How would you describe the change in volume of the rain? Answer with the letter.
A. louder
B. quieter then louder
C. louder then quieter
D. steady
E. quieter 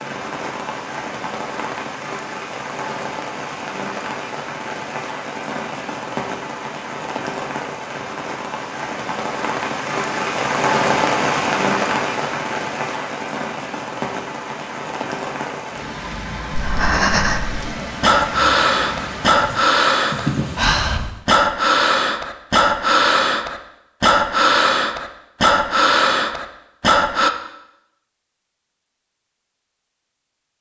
C.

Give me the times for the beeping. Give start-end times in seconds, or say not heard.
not heard.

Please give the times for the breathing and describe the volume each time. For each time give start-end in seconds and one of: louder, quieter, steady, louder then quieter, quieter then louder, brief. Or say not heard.
16.5-27.3 steady.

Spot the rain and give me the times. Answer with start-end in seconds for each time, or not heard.
0.0-21.1.